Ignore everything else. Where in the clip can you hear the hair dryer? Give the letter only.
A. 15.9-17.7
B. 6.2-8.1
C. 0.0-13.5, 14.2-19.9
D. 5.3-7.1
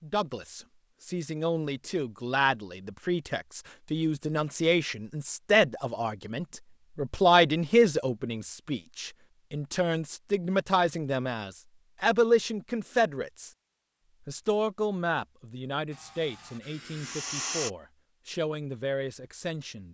A.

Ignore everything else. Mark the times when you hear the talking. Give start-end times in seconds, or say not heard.
0.0-13.5, 14.2-19.9.